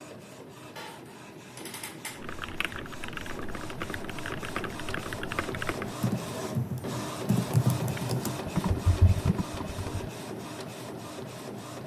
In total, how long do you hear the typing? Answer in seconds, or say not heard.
8 s.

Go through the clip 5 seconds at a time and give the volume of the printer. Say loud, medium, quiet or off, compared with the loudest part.
medium, loud, loud.